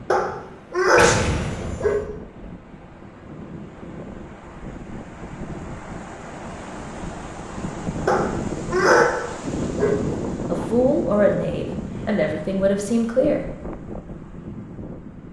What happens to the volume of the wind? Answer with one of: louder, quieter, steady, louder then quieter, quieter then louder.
louder then quieter.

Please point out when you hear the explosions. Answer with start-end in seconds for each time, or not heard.
0.9-2.0.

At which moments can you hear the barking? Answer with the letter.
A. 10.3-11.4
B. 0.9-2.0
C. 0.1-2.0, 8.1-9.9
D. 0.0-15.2
C.